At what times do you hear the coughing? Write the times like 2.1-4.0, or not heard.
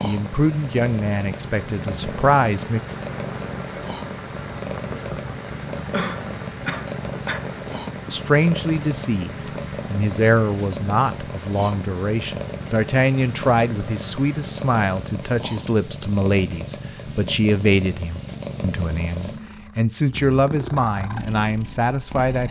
5.9-7.5.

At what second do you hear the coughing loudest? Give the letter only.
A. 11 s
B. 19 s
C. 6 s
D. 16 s
C.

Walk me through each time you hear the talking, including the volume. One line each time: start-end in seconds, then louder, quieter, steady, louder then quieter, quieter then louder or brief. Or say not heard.
0.0-2.8 brief
8.1-22.4 steady.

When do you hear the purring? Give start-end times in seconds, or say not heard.
0.0-22.4.